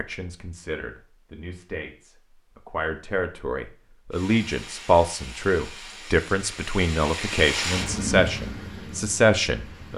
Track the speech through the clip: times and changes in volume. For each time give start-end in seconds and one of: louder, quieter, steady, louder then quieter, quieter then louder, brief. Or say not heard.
0.0-9.9 louder.